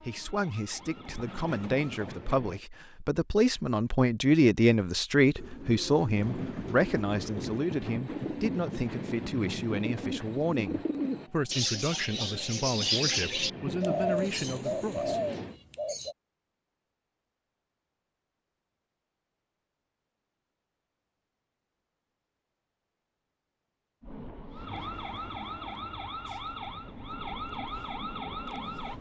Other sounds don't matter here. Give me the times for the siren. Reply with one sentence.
The siren can be heard from 0.2 to 2.2 s and from 24.5 to 28.9 s.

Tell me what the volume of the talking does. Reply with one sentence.
The volume of the talking goes up, then down.